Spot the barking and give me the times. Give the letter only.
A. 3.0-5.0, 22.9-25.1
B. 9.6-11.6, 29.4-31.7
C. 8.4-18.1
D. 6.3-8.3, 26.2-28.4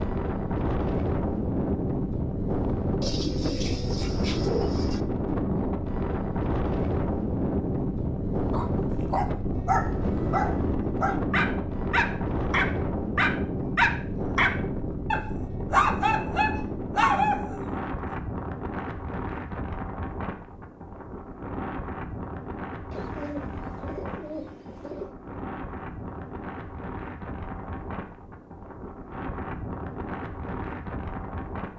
C.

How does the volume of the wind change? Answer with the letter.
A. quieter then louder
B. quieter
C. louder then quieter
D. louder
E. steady
B.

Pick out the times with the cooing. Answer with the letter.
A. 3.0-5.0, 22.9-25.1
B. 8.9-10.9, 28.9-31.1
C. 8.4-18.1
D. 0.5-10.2
A.